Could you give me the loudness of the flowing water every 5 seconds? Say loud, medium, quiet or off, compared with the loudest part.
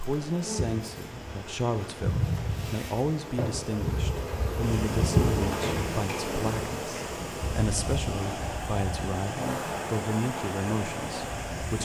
medium, loud, loud.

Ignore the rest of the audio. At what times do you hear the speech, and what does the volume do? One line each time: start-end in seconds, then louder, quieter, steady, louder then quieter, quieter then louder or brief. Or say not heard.
0.0-11.7 steady.